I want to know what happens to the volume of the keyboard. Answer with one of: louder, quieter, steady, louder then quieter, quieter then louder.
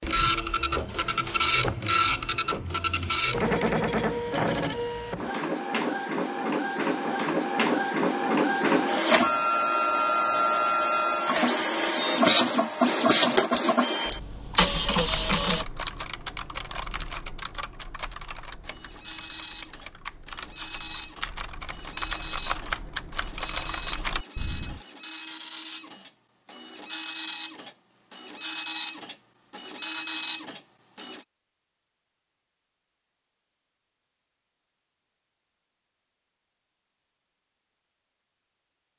quieter then louder.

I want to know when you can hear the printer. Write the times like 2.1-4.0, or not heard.
0.0-15.7, 18.6-31.2.